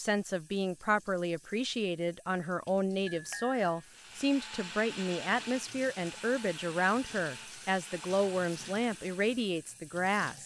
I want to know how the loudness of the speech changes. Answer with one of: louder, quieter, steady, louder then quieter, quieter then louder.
steady.